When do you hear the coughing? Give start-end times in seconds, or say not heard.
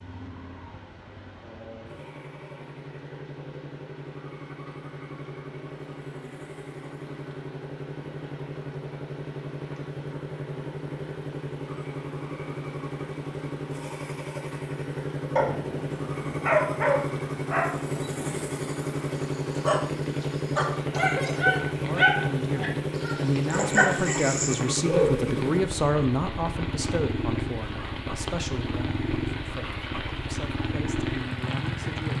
20.8-21.6.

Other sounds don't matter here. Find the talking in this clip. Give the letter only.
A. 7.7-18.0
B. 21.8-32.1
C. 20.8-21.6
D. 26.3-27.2
B.